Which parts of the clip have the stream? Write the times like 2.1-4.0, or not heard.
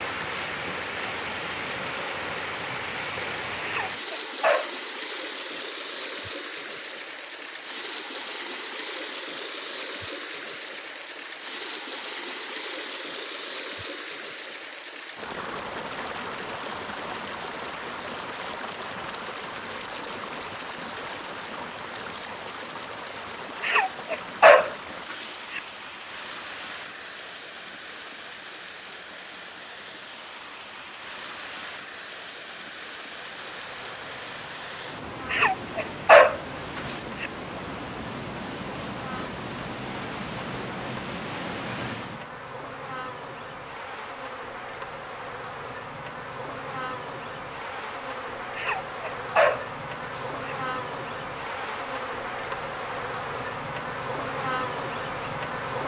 0.0-42.2.